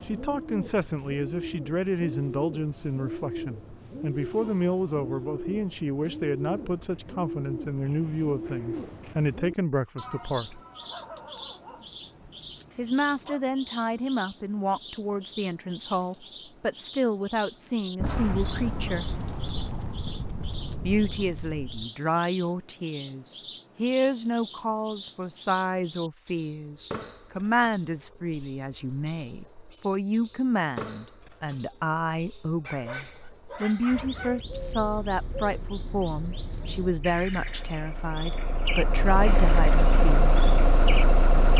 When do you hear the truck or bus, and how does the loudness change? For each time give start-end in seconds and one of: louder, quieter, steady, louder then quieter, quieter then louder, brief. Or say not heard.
34.5-41.5 louder.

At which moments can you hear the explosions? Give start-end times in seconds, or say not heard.
17.9-21.9.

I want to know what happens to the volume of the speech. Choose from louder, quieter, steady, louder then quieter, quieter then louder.
steady.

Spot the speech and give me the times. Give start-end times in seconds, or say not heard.
0.1-10.6, 12.8-19.1, 20.8-40.4.